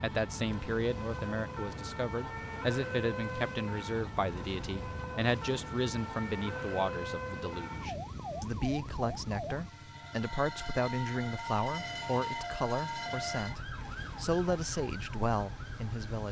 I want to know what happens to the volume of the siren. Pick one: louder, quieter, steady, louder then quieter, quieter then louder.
steady.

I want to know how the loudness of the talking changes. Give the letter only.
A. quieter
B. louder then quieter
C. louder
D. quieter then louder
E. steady
E.